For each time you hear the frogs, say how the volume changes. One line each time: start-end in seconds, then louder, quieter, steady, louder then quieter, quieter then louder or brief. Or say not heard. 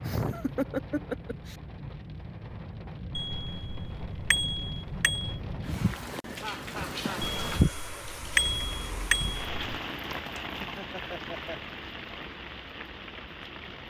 not heard.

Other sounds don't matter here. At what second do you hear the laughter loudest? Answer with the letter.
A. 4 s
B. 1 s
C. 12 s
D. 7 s
B.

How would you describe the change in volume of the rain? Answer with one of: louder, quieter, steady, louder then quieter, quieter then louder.
louder then quieter.